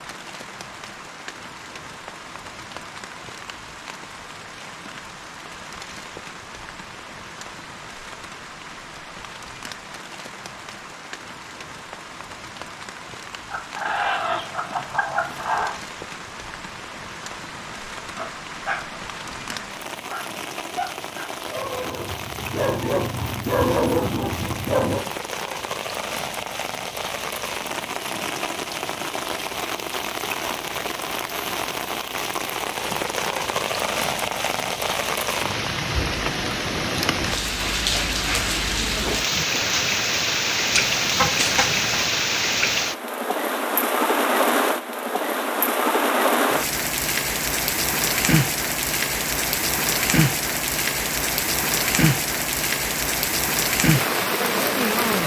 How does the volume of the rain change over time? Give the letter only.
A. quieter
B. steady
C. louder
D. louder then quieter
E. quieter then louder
C.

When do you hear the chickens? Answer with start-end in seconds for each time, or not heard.
13.5-15.8, 40.7-42.0.